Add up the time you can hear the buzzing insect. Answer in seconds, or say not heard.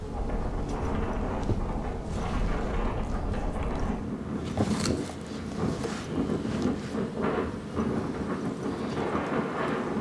10 s.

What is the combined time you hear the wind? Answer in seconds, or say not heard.
10 s.